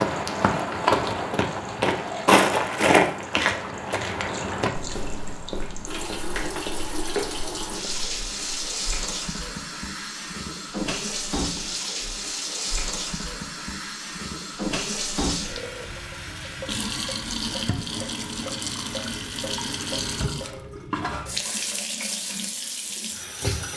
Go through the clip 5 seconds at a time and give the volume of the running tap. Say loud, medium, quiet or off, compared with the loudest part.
medium, loud, loud, loud, loud.